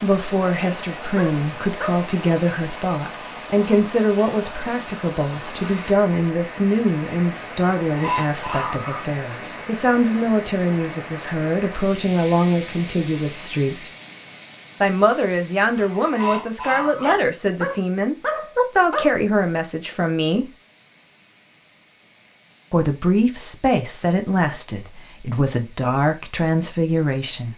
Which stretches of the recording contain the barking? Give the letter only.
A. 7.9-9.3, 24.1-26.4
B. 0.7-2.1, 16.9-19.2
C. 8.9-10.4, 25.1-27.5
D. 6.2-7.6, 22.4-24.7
B.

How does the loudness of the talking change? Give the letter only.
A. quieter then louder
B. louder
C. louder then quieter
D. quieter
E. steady
E.